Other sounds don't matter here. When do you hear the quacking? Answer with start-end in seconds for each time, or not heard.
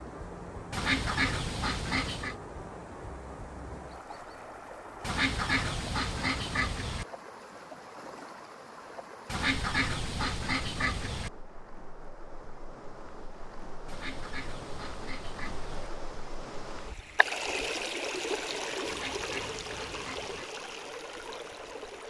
0.7-2.4, 5.0-7.0, 9.2-11.3, 13.8-15.9, 18.9-20.4.